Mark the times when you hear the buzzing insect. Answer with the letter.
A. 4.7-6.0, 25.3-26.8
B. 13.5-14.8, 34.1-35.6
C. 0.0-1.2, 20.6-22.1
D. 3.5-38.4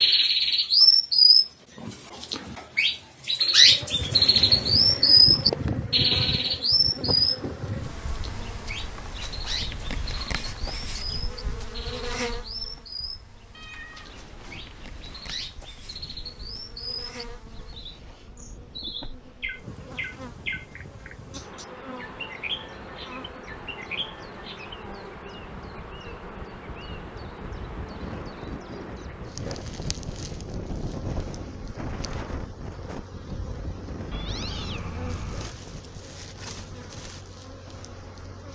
D.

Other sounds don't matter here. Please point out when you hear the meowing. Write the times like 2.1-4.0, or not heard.
13.5-14.8, 34.1-35.6.